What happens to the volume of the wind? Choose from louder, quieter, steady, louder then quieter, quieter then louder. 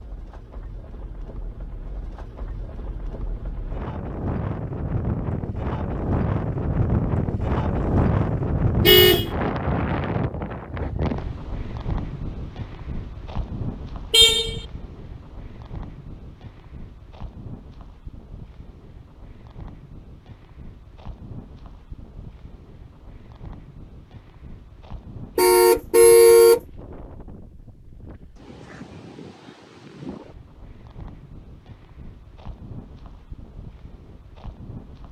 quieter.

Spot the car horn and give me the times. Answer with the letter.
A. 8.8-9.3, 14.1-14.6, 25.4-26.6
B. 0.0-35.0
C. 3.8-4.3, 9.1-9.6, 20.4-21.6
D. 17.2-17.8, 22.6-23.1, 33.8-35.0
A.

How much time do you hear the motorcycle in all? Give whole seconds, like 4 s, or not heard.
not heard.